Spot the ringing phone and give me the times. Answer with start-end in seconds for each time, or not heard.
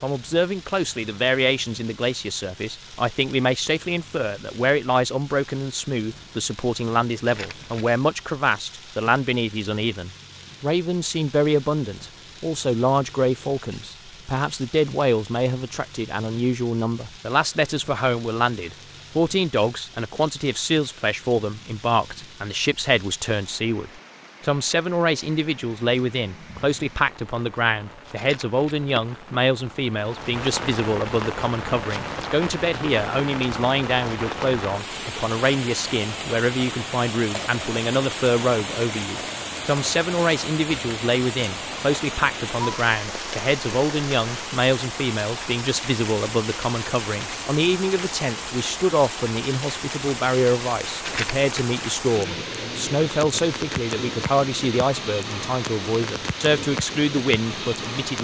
not heard.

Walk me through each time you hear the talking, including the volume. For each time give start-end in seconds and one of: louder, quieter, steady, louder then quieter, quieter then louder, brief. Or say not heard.
0.0-58.1 steady.